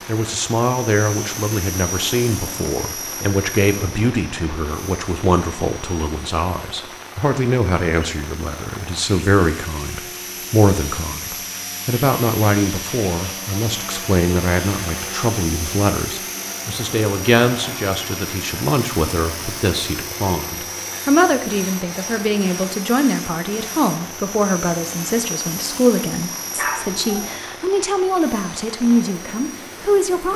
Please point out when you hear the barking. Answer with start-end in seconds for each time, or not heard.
26.4-27.4.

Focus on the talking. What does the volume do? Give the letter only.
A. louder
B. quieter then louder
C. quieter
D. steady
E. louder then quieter
D.